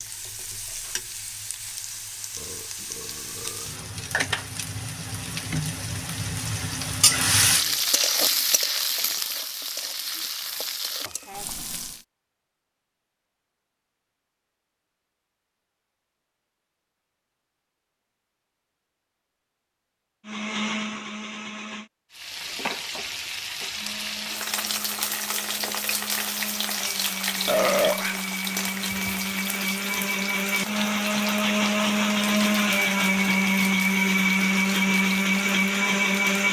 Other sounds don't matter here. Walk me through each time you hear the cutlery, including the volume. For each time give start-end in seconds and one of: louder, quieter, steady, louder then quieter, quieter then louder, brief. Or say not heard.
not heard.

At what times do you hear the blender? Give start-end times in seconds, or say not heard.
20.2-21.9, 23.8-36.4.